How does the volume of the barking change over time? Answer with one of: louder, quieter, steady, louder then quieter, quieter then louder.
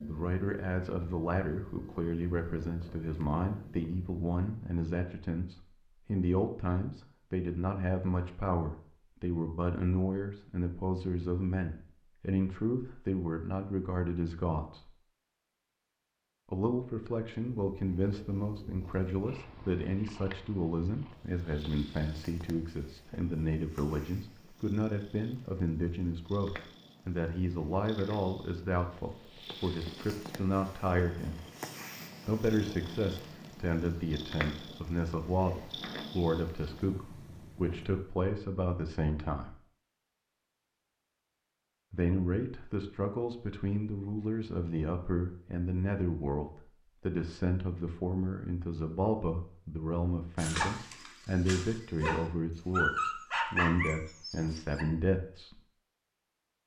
louder then quieter.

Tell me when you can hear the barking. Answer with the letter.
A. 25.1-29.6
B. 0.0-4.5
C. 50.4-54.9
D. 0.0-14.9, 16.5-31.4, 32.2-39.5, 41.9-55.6
C.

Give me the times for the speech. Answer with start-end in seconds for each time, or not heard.
0.0-14.9, 16.5-31.4, 32.2-39.5, 41.9-55.6.